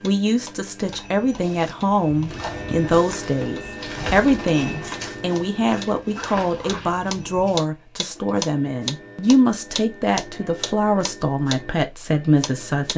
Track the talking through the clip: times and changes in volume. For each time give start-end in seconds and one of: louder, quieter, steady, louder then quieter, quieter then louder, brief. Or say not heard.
0.0-12.9 steady.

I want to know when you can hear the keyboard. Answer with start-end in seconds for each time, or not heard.
not heard.